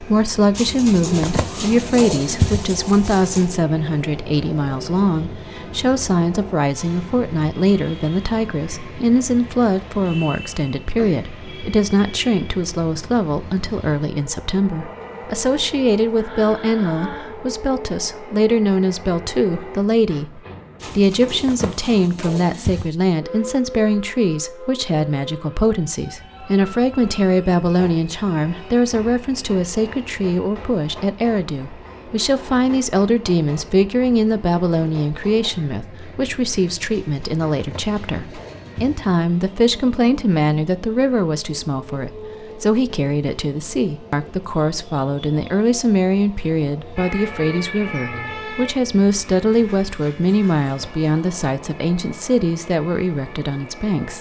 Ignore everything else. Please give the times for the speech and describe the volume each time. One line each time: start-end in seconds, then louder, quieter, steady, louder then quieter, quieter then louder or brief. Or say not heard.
0.0-54.1 steady.